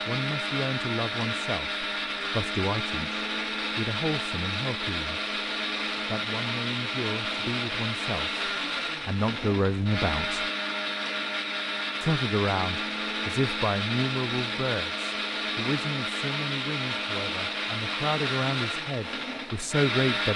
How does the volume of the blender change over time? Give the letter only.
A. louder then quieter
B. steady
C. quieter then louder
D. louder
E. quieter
B.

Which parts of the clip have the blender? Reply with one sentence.
You can hear the blender from 0.0 to 20.3 s.